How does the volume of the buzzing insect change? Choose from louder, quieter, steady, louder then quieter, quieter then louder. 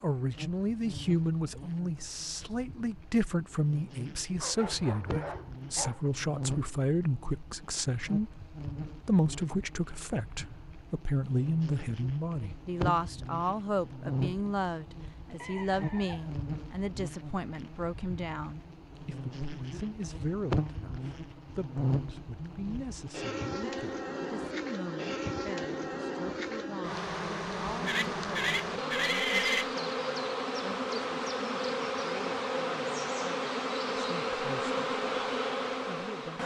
louder.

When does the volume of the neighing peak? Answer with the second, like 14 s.
29 s.